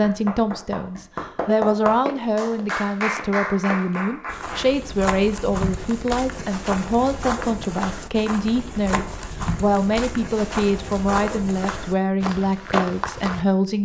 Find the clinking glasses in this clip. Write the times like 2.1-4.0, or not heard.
not heard.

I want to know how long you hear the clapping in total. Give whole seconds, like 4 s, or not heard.
5 s.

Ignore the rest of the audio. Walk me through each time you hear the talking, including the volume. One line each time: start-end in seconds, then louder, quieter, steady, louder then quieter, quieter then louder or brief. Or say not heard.
0.0-13.8 steady.